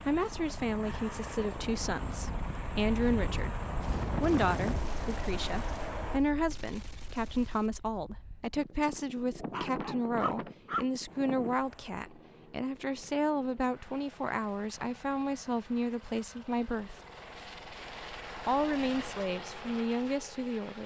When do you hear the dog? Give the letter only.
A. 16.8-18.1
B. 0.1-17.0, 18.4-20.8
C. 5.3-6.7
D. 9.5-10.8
D.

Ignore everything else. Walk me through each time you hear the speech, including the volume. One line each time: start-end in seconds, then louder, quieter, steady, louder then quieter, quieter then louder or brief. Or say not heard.
0.1-17.0 steady
18.4-20.8 brief.